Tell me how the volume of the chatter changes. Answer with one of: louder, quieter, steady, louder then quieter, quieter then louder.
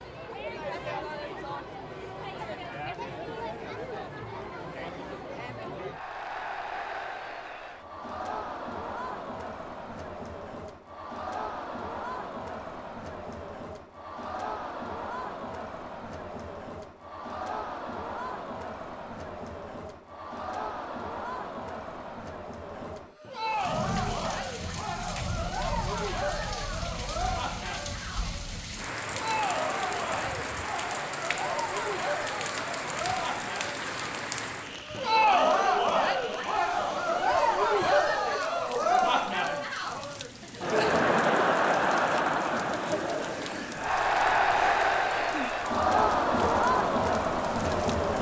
louder.